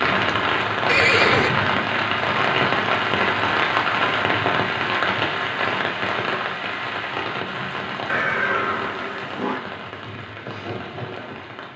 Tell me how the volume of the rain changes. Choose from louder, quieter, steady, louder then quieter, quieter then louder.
quieter.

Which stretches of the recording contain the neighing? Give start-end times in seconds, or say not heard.
0.8-1.5, 8.1-9.6.